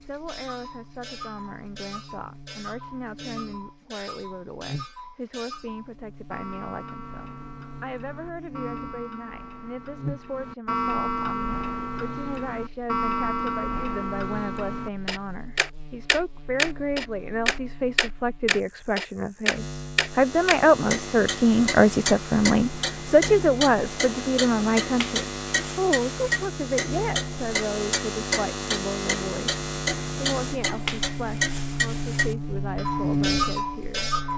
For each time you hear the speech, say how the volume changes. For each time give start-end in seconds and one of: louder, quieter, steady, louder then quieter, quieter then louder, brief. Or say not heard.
0.0-34.1 louder then quieter.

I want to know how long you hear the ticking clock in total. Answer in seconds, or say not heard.
34 s.